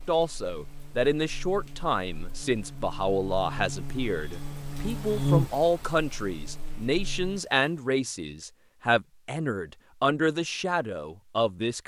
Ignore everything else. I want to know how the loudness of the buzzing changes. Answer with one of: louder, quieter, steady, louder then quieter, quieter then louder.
louder then quieter.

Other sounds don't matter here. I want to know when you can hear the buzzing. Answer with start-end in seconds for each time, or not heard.
0.1-7.4.